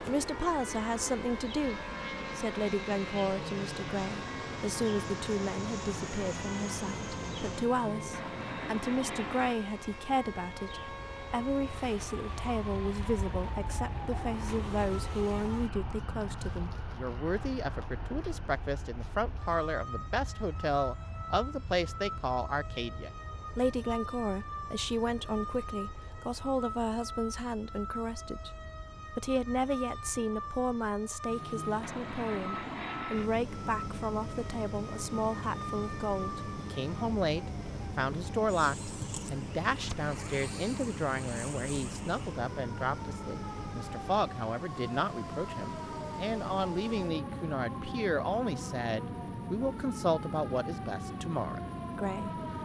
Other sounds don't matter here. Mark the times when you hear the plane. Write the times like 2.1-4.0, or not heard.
0.0-52.5.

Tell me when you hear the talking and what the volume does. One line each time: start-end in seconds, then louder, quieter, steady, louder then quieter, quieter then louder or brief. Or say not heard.
0.0-52.3 steady.